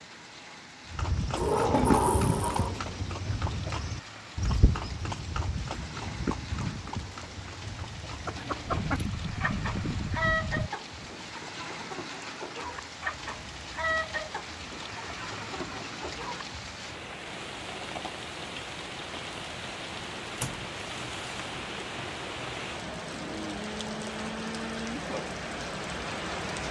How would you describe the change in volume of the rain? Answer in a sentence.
The volume of the rain goes up.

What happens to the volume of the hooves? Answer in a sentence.
The volume of the hooves goes down, then up.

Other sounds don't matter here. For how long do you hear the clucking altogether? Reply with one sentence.
You can hear the clucking for 8 seconds altogether.